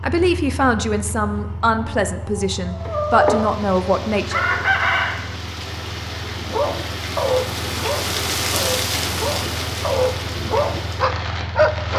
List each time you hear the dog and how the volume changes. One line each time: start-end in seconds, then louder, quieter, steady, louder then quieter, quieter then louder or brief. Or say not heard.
6.4-11.9 quieter then louder.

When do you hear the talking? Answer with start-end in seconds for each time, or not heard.
0.0-4.5.